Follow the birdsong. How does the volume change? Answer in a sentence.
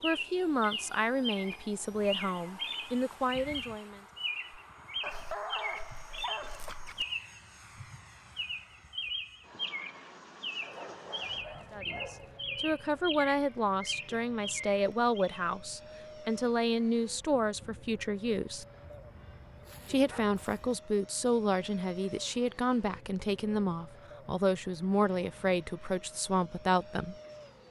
The volume of the birdsong stays about the same.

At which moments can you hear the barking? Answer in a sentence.
The barking can be heard from 5.0 to 7.0 s, from 10.6 to 12.4 s and from 18.8 to 20.8 s.